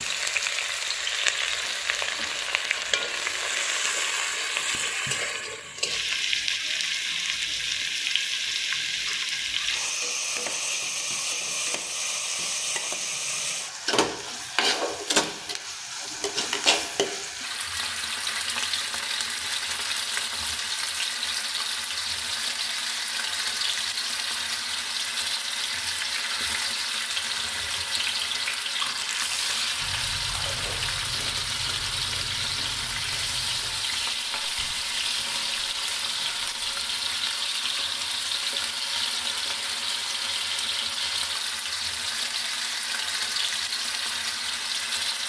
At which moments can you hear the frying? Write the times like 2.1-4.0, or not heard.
0.0-45.2.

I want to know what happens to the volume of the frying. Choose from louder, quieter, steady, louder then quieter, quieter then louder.
steady.